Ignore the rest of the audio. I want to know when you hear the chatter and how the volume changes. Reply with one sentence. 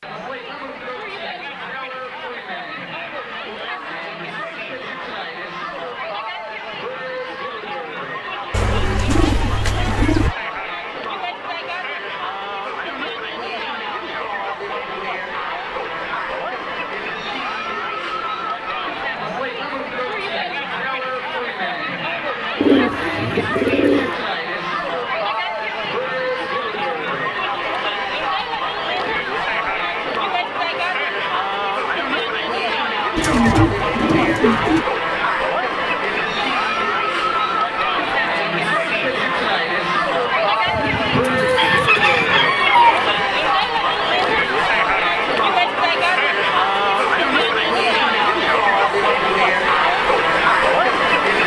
The chatter can be heard from 0.0 to 51.4 s, getting louder.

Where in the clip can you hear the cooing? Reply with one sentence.
The cooing can be heard from 8.5 to 10.3 s, from 22.6 to 24.1 s, from 33.1 to 34.9 s and from 40.6 to 43.2 s.